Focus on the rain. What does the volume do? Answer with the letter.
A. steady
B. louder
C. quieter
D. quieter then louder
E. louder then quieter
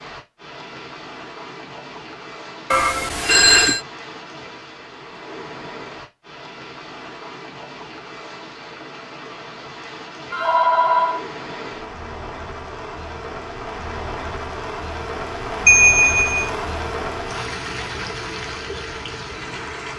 B.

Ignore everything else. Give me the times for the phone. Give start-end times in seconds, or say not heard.
2.7-3.8, 10.3-11.2, 15.7-16.5.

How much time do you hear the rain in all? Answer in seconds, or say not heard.
20 s.